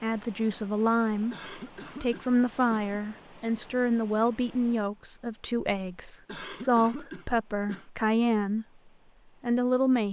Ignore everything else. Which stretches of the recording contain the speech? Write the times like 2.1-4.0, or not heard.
0.0-1.4, 2.0-8.7, 9.4-10.0.